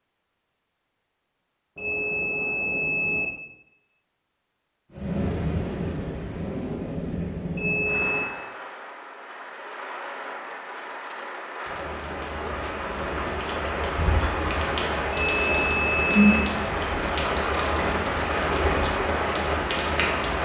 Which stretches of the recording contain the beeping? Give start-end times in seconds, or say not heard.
1.8-3.2, 7.5-8.2, 15.1-16.5.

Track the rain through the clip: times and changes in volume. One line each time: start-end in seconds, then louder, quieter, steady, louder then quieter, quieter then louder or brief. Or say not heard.
4.9-20.3 quieter then louder.